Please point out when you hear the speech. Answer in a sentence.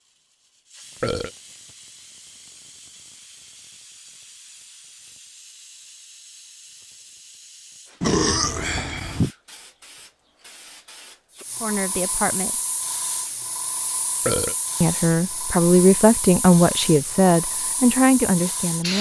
You can hear the speech from 11.6 to 12.6 s and from 14.8 to 18.9 s.